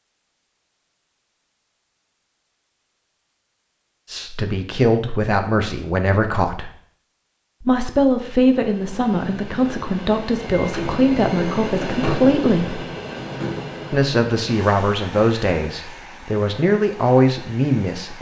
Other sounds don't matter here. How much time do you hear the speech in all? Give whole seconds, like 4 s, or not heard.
12 s.